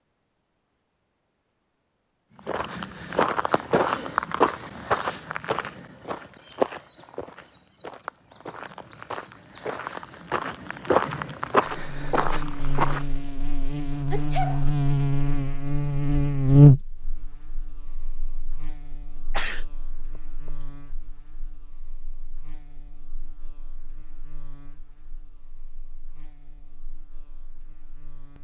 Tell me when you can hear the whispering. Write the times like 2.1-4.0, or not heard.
not heard.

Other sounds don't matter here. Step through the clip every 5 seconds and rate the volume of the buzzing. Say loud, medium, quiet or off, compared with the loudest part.
off, off, medium, loud, quiet, quiet.